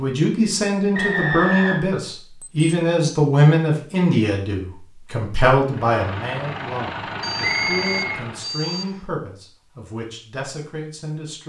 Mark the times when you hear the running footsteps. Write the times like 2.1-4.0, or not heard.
not heard.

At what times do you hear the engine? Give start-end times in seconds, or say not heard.
5.6-8.6.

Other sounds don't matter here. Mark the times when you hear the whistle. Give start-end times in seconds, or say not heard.
0.9-1.8, 7.3-8.9.